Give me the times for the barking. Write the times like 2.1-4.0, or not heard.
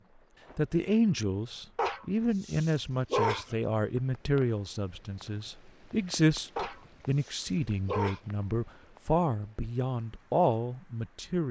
1.8-3.5, 6.5-8.2.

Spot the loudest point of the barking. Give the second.
3 s.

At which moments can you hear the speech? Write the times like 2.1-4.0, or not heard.
0.6-11.4.